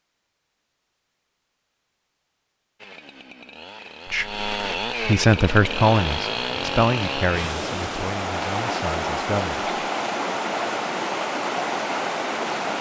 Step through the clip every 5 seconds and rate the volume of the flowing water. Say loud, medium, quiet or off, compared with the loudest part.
off, loud, loud.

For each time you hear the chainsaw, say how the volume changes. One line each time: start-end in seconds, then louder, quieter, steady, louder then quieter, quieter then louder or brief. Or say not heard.
2.8-7.5 louder.